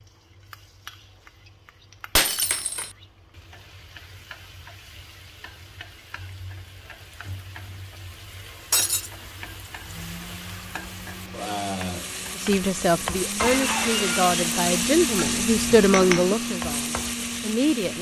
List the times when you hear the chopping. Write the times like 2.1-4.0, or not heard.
not heard.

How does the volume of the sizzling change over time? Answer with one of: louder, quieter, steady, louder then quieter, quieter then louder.
louder.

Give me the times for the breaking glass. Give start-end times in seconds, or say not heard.
2.1-2.9, 8.7-9.1, 13.3-14.8.